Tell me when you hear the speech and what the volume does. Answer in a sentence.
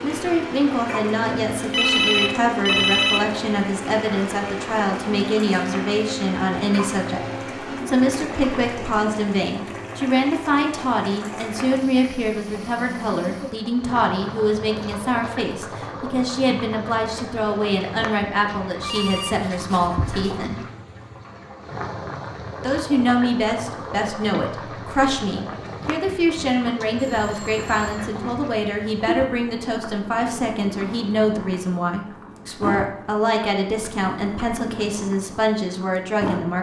You can hear the speech from 0.0 to 20.6 s, at a steady volume; and from 22.6 to 36.5 s, at a steady volume.